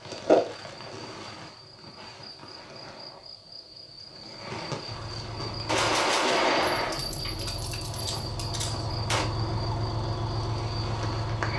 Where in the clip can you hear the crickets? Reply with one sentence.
The crickets can be heard from 0.0 to 11.5 s.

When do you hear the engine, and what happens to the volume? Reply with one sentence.
The engine can be heard from 4.8 to 11.5 s, getting louder.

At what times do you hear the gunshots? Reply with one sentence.
The gunshots can be heard from 5.7 to 9.2 s.